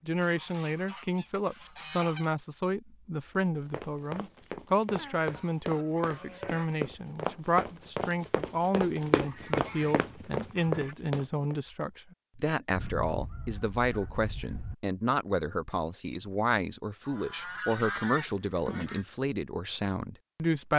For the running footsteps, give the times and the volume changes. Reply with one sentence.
You can hear the running footsteps from 3.4 to 11.6 s, getting louder.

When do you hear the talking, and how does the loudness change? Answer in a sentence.
The talking can be heard from 0.1 to 20.7 s, at a steady volume.